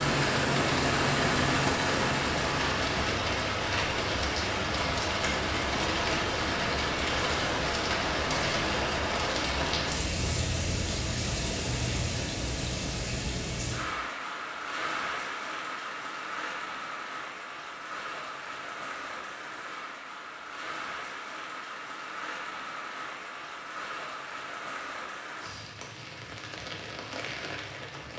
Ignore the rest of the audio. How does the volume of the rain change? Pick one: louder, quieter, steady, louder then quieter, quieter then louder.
quieter.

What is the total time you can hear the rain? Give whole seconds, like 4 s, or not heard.
28 s.